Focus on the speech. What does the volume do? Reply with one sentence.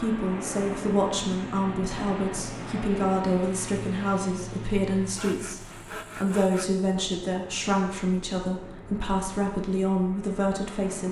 The loudness of the speech stays about the same.